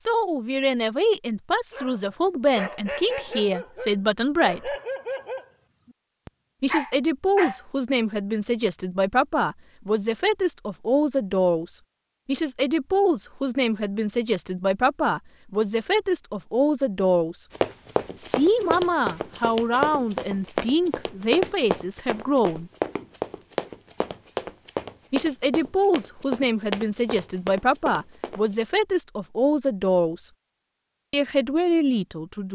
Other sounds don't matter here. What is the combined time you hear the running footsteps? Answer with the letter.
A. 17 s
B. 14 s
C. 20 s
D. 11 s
D.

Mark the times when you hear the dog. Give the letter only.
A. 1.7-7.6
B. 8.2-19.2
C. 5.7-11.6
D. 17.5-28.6
A.